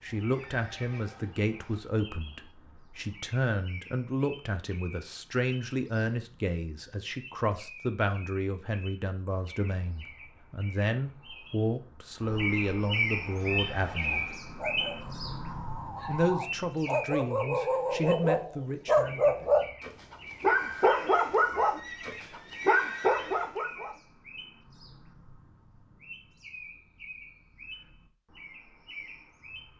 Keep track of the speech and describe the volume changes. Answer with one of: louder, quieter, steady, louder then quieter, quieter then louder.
steady.